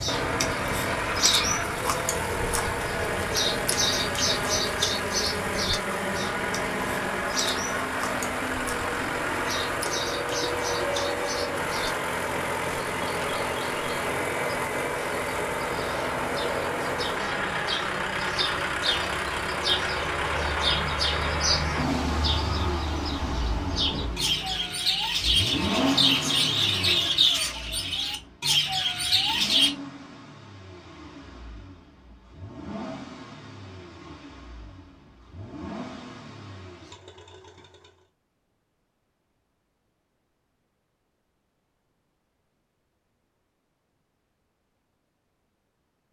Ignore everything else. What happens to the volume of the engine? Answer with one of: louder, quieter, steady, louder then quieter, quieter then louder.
quieter.